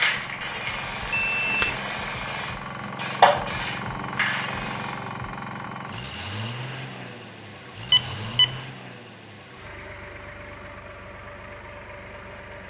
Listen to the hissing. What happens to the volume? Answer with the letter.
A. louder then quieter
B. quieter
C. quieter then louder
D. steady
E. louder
A.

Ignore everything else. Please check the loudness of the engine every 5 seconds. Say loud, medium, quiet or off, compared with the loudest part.
loud, loud, medium.